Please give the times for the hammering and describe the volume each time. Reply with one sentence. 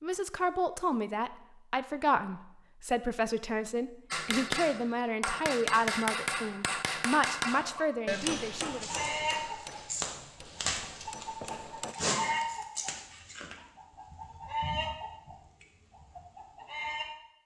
The hammering can be heard from 4.1 to 11.9 s, getting quieter.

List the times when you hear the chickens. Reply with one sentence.
The chickens can be heard from 7.5 to 17.1 s.